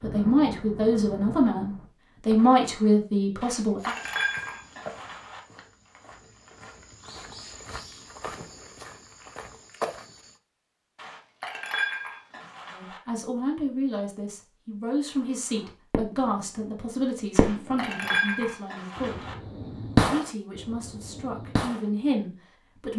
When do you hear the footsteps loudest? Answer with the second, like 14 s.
10 s.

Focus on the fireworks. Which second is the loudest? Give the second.
20 s.